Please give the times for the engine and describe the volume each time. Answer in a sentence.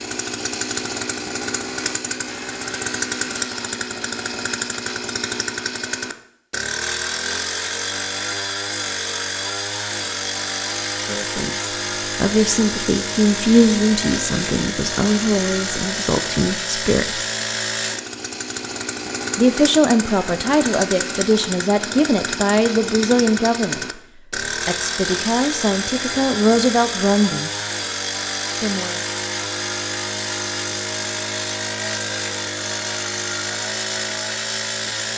You can hear the engine from 0.0 to 35.1 s, at a steady volume.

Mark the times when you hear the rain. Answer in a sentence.
The rain can't be heard in this clip.